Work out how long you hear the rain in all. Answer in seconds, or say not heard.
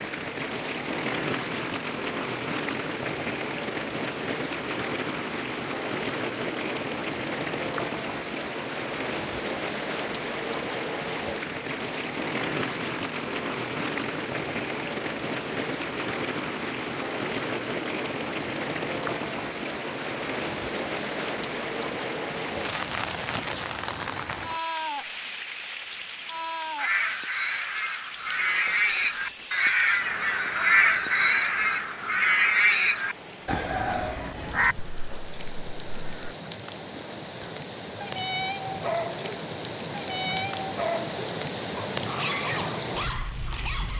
44 s.